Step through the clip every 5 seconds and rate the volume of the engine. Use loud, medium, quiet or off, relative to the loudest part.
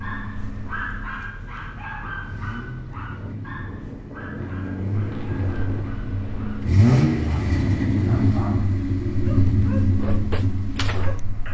quiet, loud, medium.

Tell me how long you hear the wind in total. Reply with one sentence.
The wind can be heard for 8 seconds in total.